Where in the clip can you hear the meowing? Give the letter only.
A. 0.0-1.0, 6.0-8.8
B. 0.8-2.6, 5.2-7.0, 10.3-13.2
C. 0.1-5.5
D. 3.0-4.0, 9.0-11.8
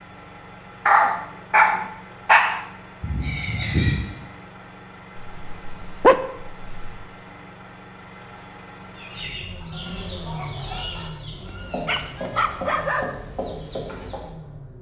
D.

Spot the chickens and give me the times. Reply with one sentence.
The chickens can be heard from 8.9 to 14.3 s.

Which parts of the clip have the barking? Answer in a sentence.
The barking can be heard from 0.8 to 2.6 s, from 5.2 to 7.0 s and from 10.3 to 13.2 s.